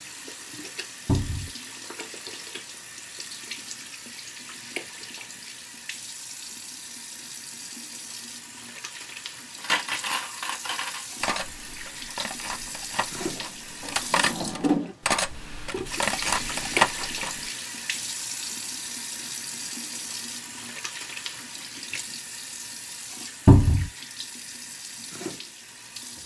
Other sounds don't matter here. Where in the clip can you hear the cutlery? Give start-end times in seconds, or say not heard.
9.6-17.4.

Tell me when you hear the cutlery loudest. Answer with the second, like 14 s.
17 s.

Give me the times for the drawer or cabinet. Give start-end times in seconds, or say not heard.
1.1-1.5, 13.3-14.9, 23.4-23.9.